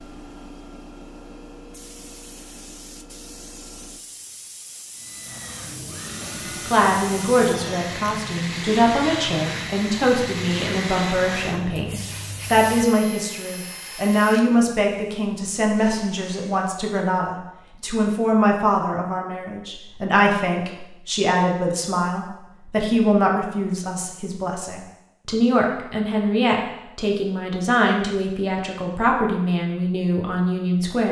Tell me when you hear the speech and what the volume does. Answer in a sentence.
The speech can be heard from 6.7 to 31.0 s, at a steady volume.